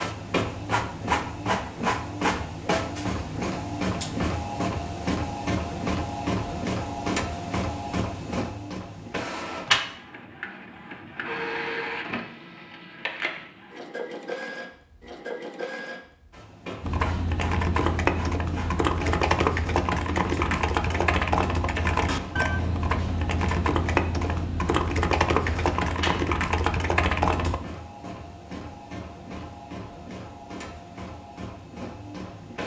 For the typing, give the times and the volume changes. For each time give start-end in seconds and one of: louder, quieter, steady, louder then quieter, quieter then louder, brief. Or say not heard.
16.8-27.6 steady.